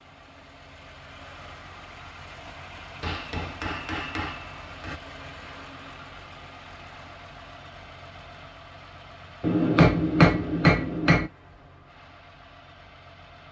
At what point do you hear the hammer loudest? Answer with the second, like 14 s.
10 s.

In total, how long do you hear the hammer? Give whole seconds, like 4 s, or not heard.
4 s.